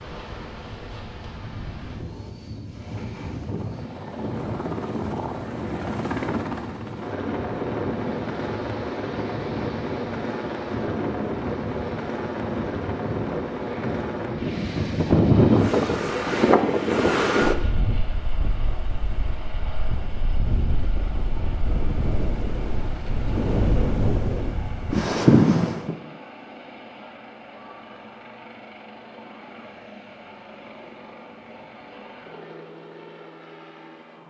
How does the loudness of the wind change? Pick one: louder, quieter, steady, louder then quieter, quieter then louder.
louder.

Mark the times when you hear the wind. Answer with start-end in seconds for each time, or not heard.
0.0-25.9.